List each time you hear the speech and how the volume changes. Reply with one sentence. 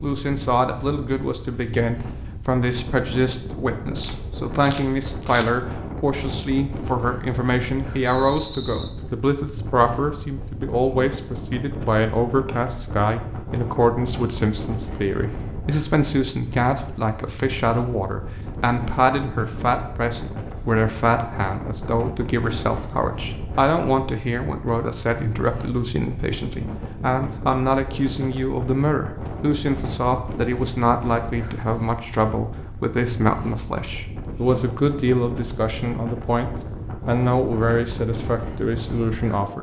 You can hear the speech from 0.0 to 39.5 s, at a steady volume.